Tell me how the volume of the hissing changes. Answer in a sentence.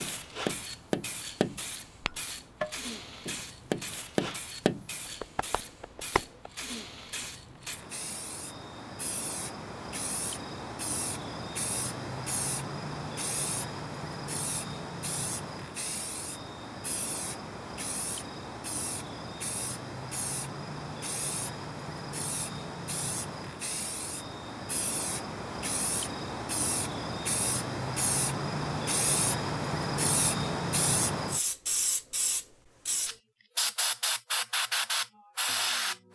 The loudness of the hissing goes up.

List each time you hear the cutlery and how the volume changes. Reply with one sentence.
The cutlery can't be heard in this clip.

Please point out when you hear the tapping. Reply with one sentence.
You can hear the tapping from 0.0 to 6.5 s.